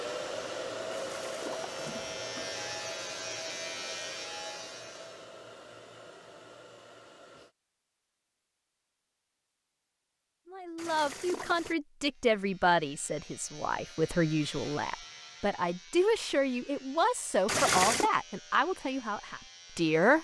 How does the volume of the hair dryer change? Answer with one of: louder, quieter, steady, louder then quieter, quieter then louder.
quieter.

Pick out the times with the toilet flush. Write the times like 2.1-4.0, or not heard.
0.9-2.2, 10.8-11.8, 17.4-18.1.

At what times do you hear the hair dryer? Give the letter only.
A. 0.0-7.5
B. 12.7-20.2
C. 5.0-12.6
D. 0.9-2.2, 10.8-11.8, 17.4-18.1
A.